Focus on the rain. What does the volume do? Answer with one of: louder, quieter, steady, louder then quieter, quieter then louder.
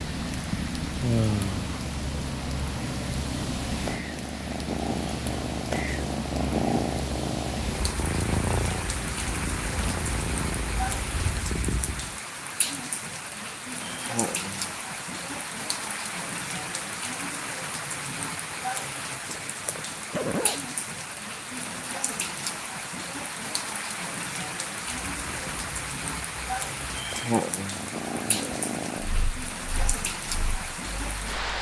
steady.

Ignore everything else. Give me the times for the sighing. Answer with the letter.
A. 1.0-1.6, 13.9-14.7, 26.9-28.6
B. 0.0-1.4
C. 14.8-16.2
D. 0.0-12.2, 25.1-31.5
A.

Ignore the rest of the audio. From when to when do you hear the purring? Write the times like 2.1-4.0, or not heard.
0.0-12.2, 25.1-31.5.